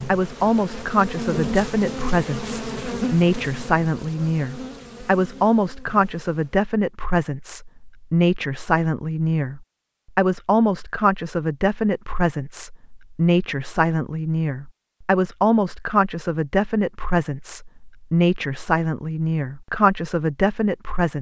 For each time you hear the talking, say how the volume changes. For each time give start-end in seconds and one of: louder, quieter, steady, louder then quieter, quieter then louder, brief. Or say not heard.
0.1-21.1 steady.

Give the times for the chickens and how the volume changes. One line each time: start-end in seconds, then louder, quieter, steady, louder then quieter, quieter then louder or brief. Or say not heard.
not heard.